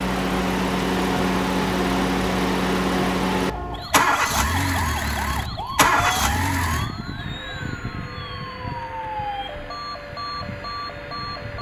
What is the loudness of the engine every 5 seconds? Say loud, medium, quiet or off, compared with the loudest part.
loud, medium, quiet.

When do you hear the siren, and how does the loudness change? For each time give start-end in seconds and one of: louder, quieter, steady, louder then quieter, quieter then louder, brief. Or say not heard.
0.0-11.5 steady.